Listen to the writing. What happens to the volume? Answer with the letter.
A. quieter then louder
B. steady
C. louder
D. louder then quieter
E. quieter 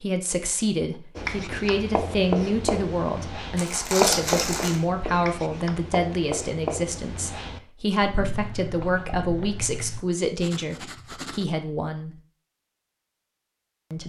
E.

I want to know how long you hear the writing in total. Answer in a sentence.
The writing can be heard for 10 seconds in total.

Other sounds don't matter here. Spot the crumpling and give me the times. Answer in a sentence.
The crumpling can be heard from 3.5 to 4.8 s.